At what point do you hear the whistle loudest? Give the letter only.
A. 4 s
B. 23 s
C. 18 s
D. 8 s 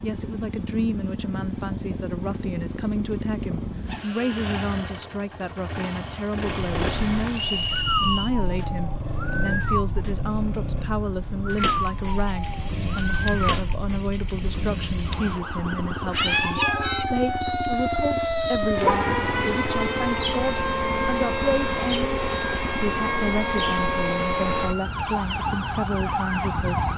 D.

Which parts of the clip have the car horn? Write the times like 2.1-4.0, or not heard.
18.8-19.6.